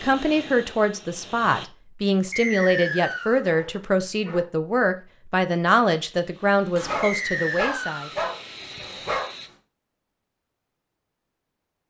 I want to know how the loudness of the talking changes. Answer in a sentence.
The loudness of the talking stays about the same.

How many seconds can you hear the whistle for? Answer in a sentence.
You can hear the whistle for 2 seconds altogether.